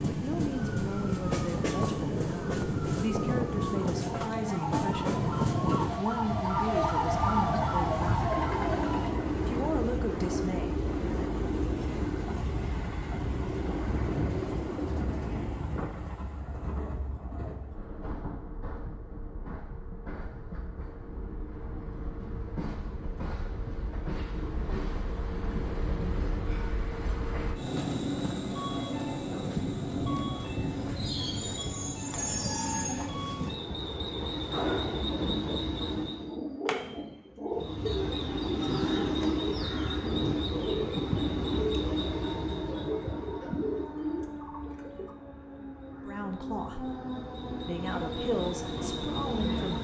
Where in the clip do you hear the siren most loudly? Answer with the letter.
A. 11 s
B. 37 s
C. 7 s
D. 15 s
C.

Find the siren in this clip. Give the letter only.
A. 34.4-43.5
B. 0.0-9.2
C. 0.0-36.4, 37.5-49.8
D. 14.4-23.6
B.